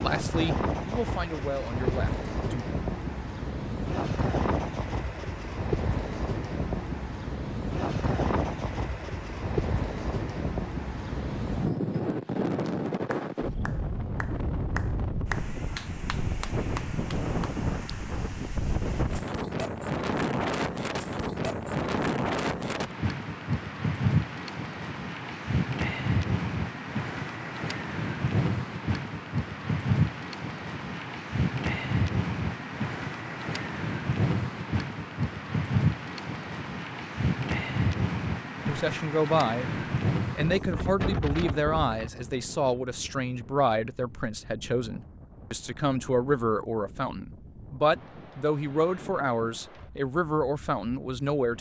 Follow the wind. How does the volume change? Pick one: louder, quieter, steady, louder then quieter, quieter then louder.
quieter.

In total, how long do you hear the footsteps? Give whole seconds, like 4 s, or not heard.
not heard.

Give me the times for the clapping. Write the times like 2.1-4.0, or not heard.
12.7-17.9.